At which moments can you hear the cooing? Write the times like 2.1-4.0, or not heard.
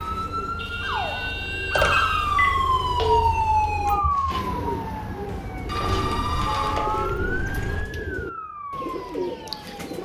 0.0-9.9.